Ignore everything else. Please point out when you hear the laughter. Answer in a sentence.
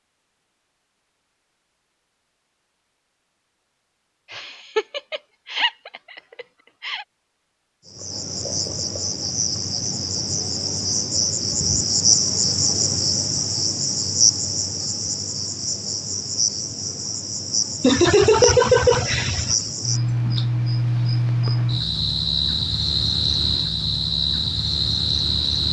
You can hear the laughter from 4.3 to 7.0 s and from 17.8 to 19.6 s.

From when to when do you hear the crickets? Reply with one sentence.
You can hear the crickets from 7.8 to 25.6 s.